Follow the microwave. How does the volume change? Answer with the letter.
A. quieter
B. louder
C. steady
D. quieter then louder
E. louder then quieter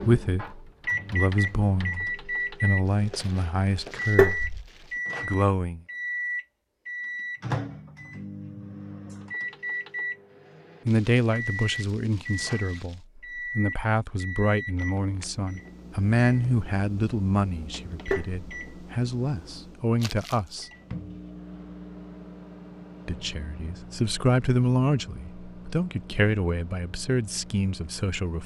A.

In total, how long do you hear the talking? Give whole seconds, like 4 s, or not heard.
21 s.